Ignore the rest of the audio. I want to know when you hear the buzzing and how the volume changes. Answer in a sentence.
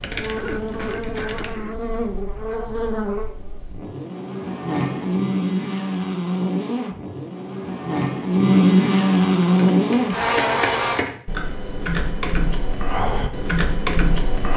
The buzzing can be heard from 0.0 to 11.1 s, getting louder.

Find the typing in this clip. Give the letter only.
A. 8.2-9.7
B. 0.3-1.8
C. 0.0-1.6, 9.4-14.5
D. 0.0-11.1
C.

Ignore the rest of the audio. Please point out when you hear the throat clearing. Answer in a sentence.
You can hear the throat clearing from 0.3 to 1.8 s.